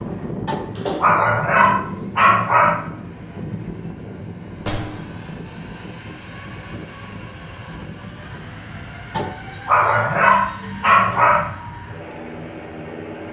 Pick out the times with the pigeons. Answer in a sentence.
You can't hear the pigeons here.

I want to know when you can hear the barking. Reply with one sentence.
The barking can be heard from 0.5 to 2.9 s and from 9.2 to 11.5 s.